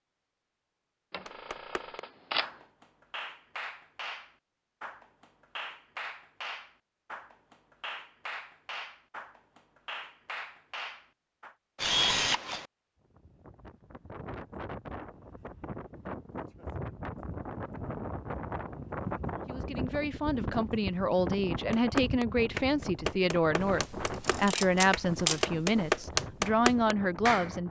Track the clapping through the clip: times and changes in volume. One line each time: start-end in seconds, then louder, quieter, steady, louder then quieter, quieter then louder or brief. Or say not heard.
1.2-11.6 steady
21.7-27.5 quieter then louder.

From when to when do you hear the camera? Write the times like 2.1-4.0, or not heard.
1.1-2.5, 11.8-12.7, 23.6-25.9.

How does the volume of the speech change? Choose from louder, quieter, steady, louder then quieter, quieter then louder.
steady.